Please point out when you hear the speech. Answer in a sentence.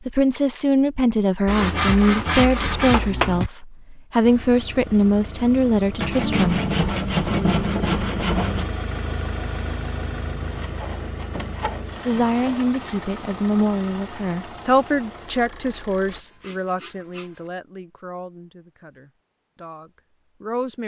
You can hear the speech from 0.1 to 6.6 s and from 12.1 to 20.8 s.